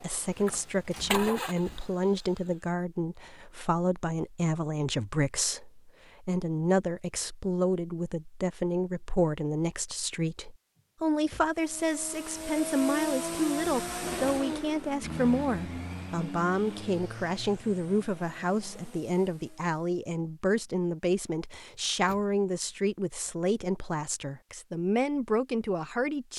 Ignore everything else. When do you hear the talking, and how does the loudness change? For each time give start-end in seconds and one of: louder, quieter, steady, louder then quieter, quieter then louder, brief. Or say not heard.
0.0-26.3 steady.